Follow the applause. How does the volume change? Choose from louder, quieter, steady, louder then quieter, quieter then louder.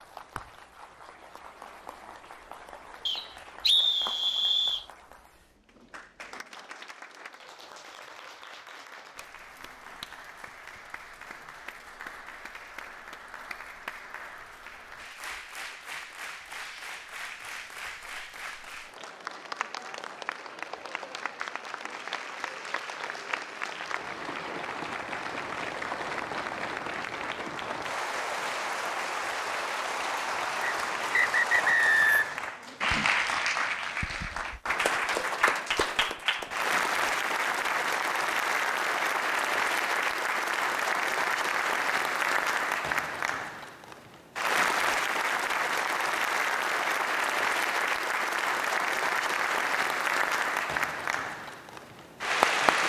louder.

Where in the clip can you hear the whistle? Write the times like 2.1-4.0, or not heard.
3.0-4.8, 30.6-32.5.